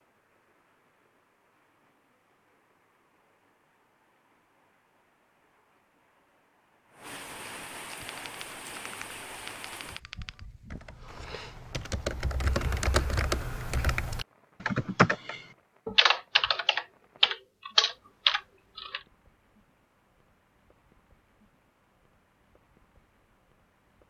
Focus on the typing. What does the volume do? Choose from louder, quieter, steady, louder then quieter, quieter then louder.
louder.